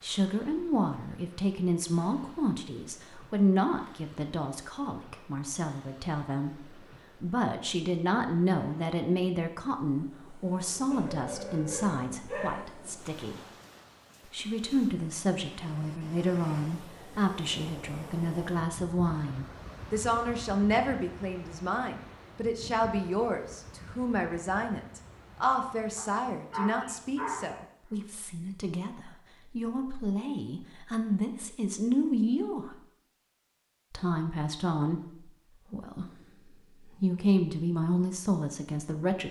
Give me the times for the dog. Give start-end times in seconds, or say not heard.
10.9-12.7, 25.9-27.6.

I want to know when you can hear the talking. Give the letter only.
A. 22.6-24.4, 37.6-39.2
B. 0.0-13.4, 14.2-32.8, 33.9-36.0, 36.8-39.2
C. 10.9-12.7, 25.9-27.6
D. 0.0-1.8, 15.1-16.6
B.